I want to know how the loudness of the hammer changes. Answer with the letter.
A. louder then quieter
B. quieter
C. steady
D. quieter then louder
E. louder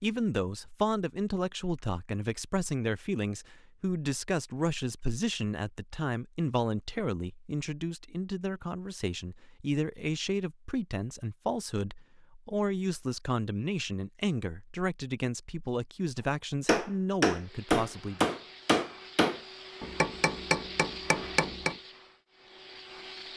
B.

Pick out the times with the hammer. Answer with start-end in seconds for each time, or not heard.
16.6-21.8.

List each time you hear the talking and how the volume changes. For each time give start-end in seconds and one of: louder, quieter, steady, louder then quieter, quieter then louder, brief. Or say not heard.
0.0-18.4 steady.